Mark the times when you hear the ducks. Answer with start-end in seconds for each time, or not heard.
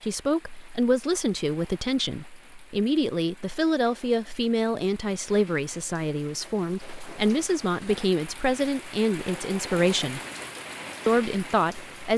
not heard.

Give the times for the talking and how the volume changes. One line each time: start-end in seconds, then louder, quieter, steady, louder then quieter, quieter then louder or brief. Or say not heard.
0.0-10.2 steady
11.1-12.1 brief.